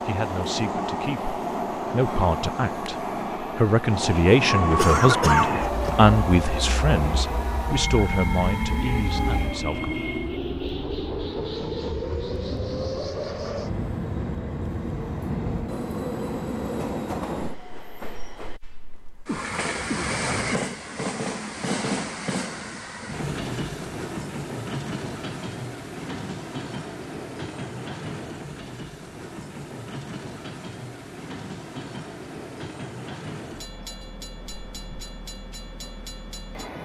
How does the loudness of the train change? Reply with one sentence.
The loudness of the train goes down.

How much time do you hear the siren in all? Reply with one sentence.
The siren can be heard for 5 seconds in total.